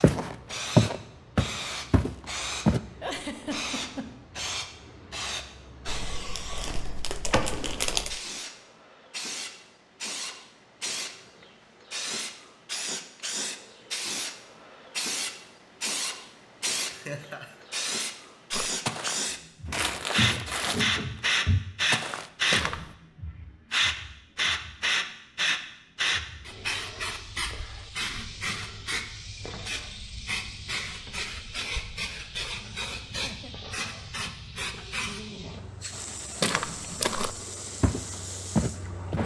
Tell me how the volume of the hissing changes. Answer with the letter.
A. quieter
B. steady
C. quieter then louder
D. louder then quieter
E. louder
D.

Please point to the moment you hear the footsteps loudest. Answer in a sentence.
The volume of the footsteps peaks at 1 second.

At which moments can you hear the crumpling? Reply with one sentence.
The crumpling can be heard from 5.8 to 8.2 s and from 19.7 to 20.9 s.